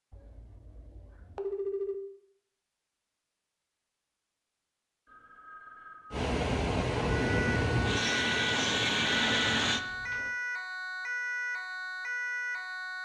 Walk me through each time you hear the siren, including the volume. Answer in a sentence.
The siren can be heard from 7.2 to 13.0 s, at a steady volume.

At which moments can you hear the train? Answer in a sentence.
You can hear the train from 6.1 to 9.8 s.